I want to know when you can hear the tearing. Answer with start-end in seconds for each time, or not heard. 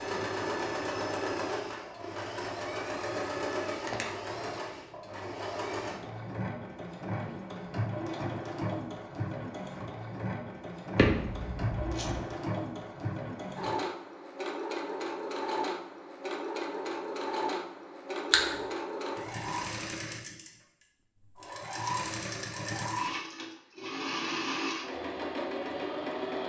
not heard.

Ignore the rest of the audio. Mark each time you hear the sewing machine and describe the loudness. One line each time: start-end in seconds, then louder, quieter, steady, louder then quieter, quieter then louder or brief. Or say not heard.
0.0-26.4 steady.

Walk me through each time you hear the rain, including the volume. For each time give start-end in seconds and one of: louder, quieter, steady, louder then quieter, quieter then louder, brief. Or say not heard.
not heard.